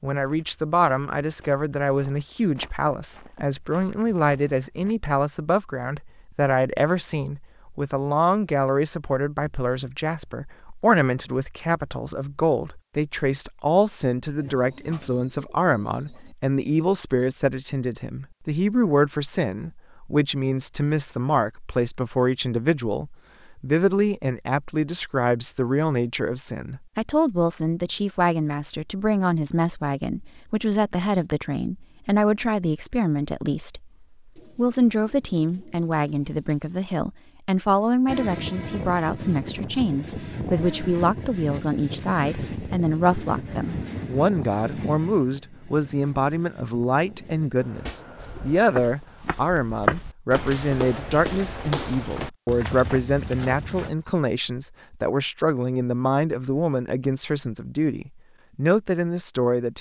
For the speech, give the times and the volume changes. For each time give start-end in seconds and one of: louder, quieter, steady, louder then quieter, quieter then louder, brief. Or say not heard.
0.0-59.7 steady.